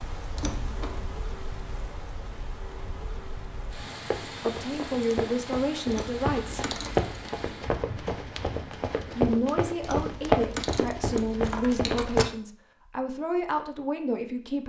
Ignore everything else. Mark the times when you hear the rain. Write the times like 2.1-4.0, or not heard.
0.0-9.2.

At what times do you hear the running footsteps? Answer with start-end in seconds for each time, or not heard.
4.0-12.3.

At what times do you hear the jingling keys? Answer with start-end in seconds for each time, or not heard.
0.3-1.1, 5.9-7.2, 9.8-12.3.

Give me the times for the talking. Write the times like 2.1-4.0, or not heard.
4.4-6.7, 9.2-14.6.